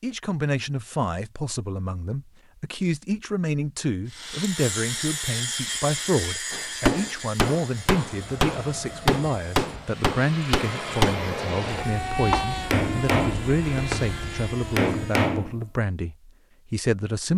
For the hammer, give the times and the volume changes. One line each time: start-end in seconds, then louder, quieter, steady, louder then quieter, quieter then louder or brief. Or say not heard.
6.5-15.6 steady.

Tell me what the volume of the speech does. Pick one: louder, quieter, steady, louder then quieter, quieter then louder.
steady.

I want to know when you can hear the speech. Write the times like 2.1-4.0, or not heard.
0.0-17.3.